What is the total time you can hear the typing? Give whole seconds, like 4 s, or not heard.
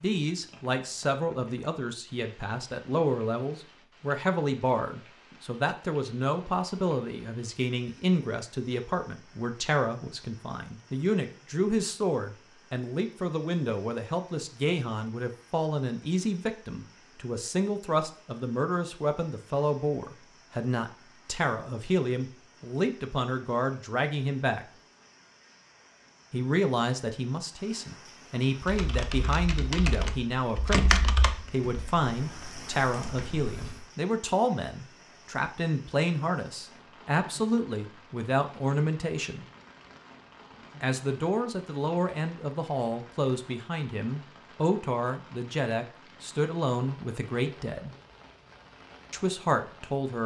5 s.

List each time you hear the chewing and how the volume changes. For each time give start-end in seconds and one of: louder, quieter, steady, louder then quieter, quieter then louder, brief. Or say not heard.
not heard.